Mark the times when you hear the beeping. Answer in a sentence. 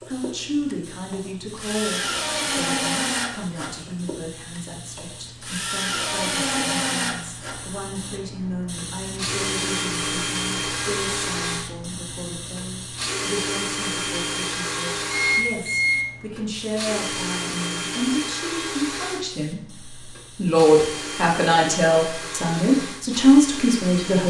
You can hear the beeping from 15.1 to 16.0 s.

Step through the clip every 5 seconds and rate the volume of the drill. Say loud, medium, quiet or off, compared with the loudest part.
loud, loud, loud, loud, medium.